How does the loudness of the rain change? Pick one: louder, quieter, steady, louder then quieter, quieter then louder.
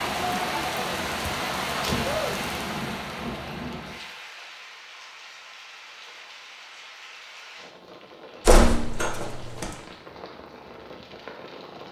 quieter.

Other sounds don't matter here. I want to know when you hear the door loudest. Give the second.
9 s.